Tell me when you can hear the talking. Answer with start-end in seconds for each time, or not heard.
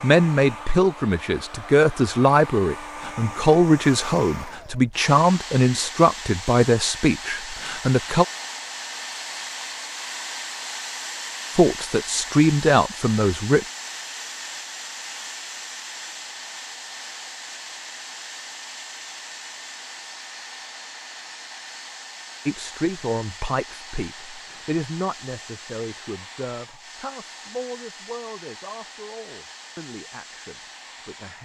0.0-8.2, 11.6-13.7, 22.4-31.4.